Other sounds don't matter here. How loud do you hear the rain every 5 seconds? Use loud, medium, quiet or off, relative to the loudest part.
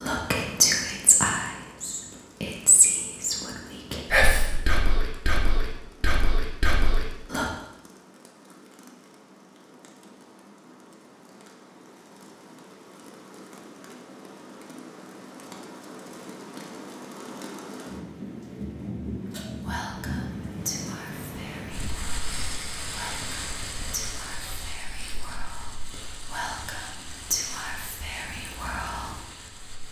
quiet, quiet, medium, loud, loud, medium.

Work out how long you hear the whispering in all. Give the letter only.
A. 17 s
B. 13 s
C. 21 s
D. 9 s
A.